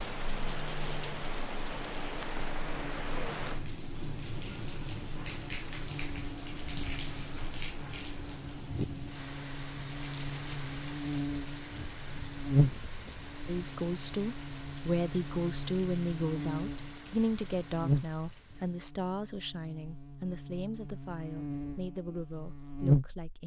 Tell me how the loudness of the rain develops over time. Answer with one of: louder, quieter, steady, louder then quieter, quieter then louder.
quieter.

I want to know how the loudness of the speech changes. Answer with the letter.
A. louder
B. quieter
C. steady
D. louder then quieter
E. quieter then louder
B.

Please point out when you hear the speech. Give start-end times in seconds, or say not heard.
13.4-23.4.